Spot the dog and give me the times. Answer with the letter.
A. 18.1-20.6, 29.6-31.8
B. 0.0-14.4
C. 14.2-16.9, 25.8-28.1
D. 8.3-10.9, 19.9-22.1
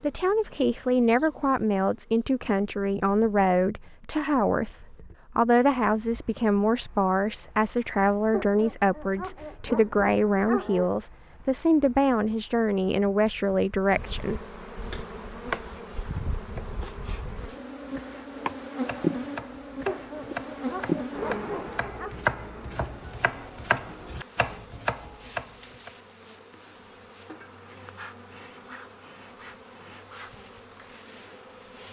D.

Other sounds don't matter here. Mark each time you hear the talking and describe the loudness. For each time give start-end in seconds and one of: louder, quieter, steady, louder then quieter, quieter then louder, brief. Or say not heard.
0.0-14.4 steady.